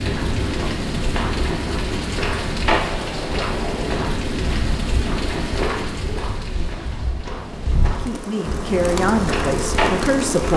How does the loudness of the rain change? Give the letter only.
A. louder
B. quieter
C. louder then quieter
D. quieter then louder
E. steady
D.